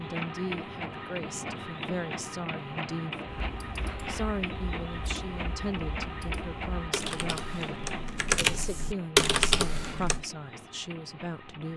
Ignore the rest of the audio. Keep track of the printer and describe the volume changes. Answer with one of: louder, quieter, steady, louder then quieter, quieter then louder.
quieter.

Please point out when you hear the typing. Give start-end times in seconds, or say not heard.
3.2-10.2.